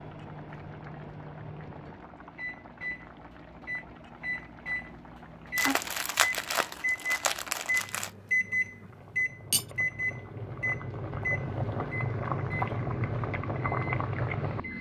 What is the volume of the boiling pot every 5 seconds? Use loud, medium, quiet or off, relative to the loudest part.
quiet, quiet, loud.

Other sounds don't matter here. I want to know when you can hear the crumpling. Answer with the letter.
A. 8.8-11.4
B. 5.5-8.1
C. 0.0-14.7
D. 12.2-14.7
B.